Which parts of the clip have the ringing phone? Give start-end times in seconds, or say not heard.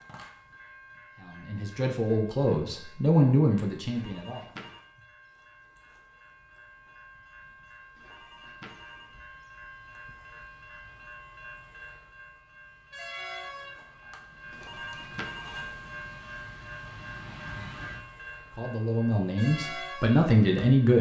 3.9-4.8, 8.0-9.2, 14.5-15.8.